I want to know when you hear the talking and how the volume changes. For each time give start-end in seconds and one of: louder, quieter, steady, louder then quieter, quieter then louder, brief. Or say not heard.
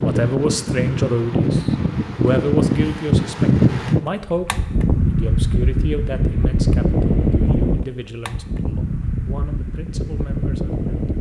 0.0-10.9 quieter.